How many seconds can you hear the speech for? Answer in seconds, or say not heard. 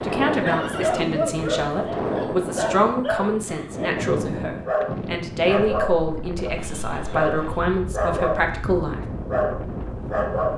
9 s.